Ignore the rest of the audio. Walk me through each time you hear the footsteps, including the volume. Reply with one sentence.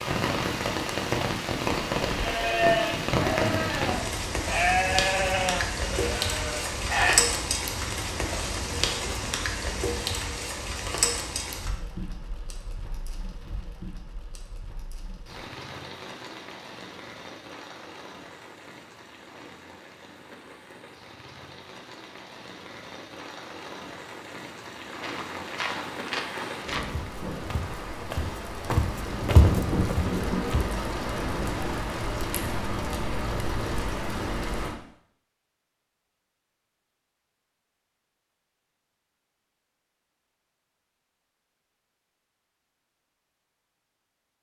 The footsteps can be heard from 24.9 to 30.8 s, getting louder.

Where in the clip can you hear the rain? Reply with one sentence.
The rain can be heard from 0.0 to 34.8 s.